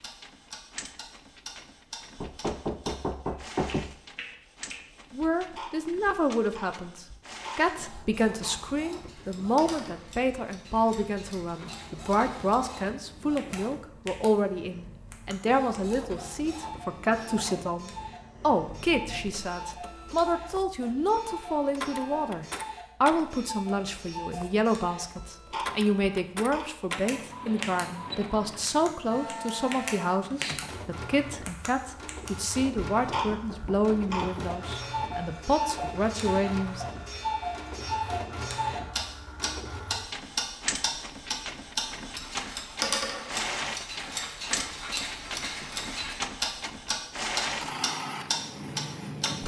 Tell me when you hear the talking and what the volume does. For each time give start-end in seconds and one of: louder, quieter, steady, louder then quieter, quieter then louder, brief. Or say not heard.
5.1-36.9 steady.